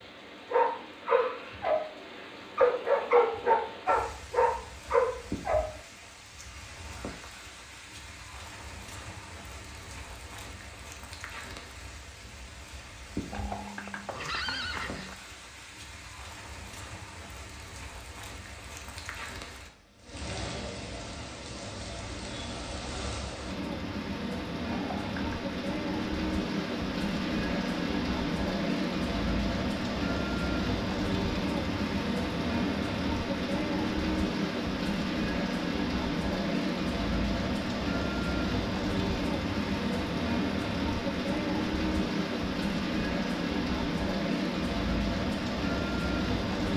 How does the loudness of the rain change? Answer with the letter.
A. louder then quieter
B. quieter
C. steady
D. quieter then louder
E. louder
E.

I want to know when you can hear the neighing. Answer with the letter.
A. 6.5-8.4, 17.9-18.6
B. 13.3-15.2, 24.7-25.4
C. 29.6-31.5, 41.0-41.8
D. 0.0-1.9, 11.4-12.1
B.